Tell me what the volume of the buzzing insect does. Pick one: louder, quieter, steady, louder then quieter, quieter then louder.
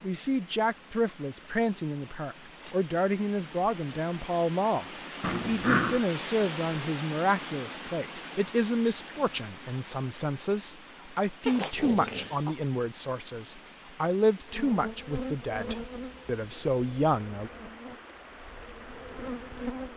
quieter then louder.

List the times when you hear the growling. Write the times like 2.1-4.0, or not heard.
5.2-6.0, 11.4-12.6.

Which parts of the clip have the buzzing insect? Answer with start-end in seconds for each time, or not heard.
14.4-19.9.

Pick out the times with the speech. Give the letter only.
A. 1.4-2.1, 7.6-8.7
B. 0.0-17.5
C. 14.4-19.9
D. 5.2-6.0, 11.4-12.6
B.